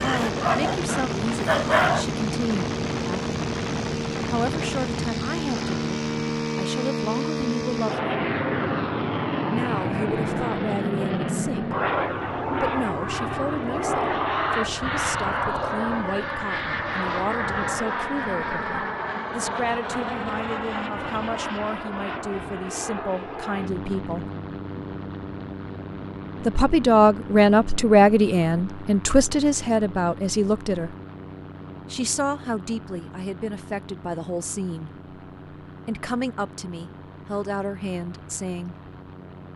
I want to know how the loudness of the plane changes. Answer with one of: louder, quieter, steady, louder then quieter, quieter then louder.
quieter.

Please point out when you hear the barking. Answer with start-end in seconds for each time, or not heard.
0.0-2.0.